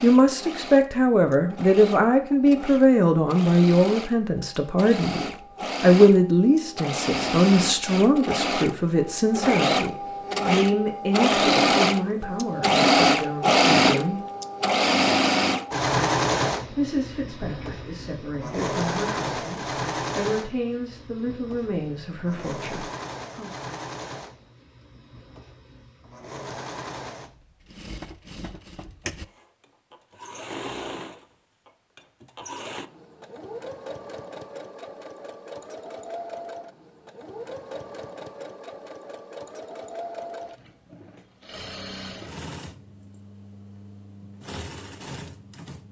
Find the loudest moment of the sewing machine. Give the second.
13 s.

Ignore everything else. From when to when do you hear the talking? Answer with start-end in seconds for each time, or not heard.
0.0-14.2, 16.7-23.5.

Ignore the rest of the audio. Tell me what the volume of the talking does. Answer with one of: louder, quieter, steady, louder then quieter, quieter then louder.
quieter.